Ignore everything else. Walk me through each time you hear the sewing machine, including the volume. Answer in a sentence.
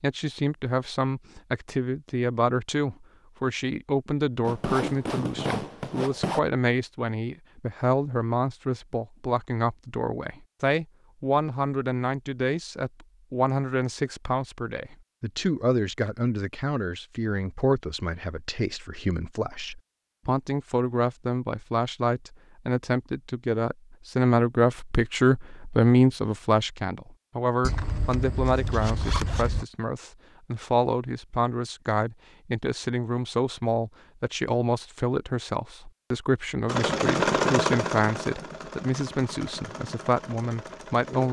You can hear the sewing machine from 36.6 to 41.2 s, getting quieter.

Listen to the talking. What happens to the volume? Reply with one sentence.
The loudness of the talking stays about the same.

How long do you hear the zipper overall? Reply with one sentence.
You can hear the zipper for 4 seconds altogether.